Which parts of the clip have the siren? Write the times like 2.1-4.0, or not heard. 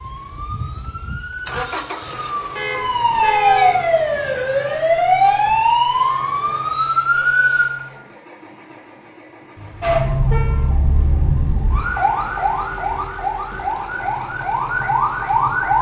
0.0-7.7, 9.8-15.7.